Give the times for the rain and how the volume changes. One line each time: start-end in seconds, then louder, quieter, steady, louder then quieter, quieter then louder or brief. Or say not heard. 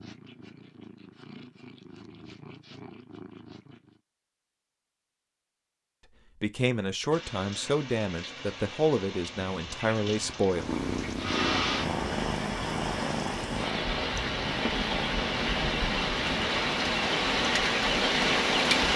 7.1-18.9 louder.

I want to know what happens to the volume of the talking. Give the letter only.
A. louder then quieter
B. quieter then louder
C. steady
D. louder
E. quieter
C.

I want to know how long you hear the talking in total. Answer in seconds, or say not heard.
4 s.